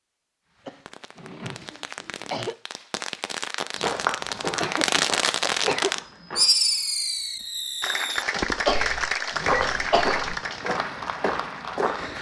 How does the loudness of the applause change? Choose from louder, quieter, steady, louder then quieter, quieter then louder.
quieter.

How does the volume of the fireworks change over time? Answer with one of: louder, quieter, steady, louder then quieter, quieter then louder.
louder then quieter.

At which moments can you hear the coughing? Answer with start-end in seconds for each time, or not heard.
0.7-2.5, 4.4-5.9, 8.4-10.3.